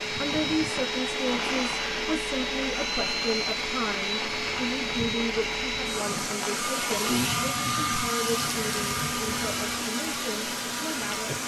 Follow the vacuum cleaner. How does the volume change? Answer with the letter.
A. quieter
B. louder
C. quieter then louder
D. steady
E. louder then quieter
D.